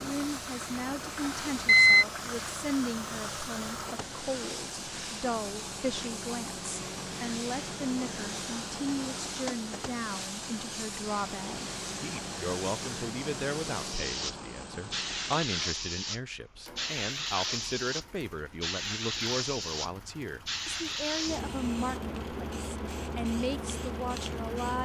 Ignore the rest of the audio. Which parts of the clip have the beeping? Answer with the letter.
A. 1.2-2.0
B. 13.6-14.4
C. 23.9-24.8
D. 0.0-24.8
A.